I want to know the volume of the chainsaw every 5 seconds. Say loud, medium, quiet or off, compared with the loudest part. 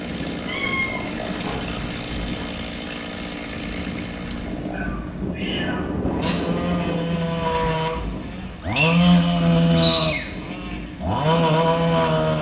medium, loud, loud.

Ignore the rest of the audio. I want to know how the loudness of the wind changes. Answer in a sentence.
The volume of the wind goes up, then down.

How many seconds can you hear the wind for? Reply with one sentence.
You can hear the wind for 12 seconds altogether.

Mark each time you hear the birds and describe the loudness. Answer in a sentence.
You can't hear the birds here.